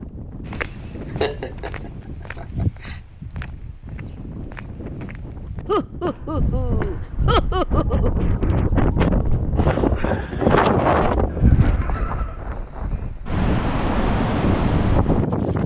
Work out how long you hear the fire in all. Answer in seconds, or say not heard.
not heard.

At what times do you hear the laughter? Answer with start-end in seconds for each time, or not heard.
0.7-3.0, 5.7-8.3, 11.2-12.4.